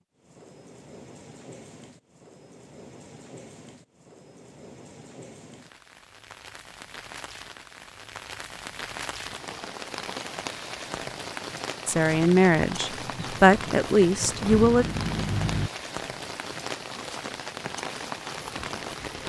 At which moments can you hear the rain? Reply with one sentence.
You can hear the rain from 0.0 to 19.2 s.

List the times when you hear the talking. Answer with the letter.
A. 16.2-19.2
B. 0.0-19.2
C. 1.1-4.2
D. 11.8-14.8
D.